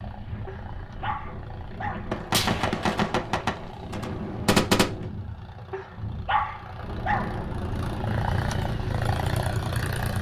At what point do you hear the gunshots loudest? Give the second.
5 s.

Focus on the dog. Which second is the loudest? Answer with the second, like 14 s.
6 s.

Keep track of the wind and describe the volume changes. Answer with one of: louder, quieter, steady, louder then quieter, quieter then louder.
louder.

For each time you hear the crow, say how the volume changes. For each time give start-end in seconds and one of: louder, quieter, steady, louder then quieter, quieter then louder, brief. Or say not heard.
not heard.